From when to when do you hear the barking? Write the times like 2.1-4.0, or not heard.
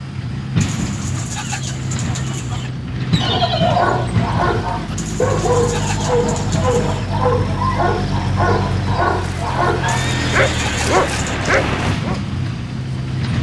3.1-12.2.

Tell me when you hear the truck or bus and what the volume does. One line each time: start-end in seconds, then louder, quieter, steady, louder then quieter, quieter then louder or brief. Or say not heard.
0.0-13.3 steady.